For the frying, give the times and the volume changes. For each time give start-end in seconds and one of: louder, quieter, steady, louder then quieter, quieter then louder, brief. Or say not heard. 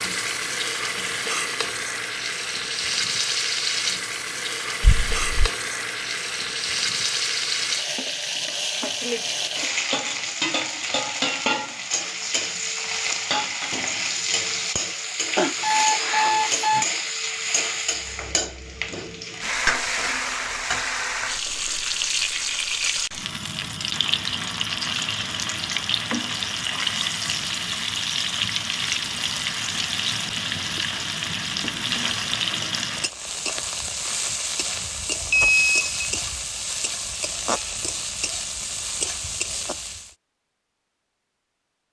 0.0-40.1 steady.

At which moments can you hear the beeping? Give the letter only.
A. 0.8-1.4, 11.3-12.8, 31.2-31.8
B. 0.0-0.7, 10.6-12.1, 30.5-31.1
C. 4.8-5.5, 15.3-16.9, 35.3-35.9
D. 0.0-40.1
C.